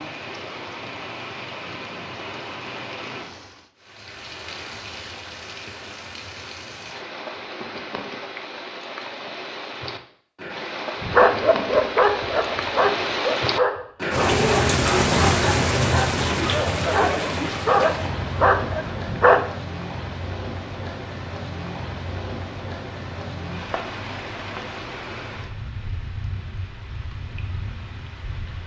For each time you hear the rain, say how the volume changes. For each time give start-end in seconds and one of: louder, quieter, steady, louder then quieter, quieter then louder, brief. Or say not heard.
0.0-28.6 louder then quieter.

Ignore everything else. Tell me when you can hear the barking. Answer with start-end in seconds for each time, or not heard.
11.0-19.5.